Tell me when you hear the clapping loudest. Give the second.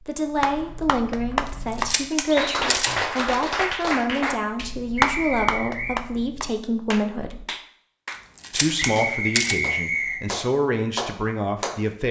5 s.